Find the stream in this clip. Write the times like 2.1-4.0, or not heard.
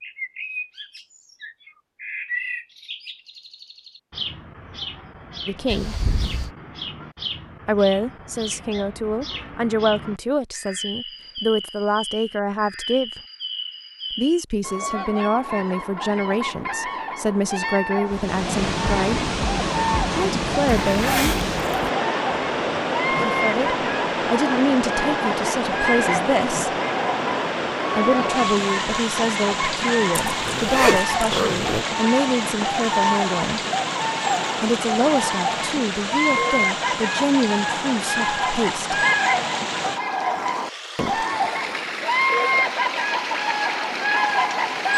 18.1-44.9.